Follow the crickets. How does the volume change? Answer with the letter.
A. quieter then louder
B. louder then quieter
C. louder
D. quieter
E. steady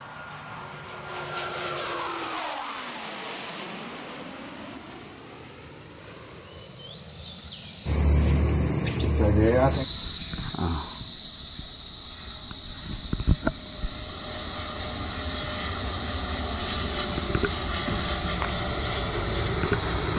B.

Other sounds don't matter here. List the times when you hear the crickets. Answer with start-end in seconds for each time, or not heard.
0.0-20.1.